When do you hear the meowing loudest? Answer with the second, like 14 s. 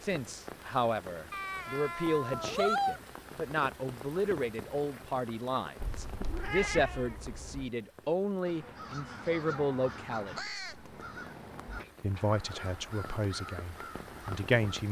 3 s.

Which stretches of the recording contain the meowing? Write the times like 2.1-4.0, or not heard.
1.3-3.0, 5.8-7.7, 11.7-12.7.